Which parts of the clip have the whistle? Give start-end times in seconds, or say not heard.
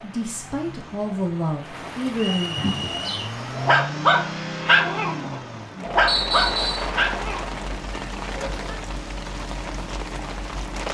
2.1-3.2, 6.0-6.9.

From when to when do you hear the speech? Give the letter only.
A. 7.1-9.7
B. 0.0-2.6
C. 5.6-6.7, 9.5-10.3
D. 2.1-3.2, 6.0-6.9
B.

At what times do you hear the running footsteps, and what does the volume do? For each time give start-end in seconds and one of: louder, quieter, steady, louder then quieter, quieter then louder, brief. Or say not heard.
not heard.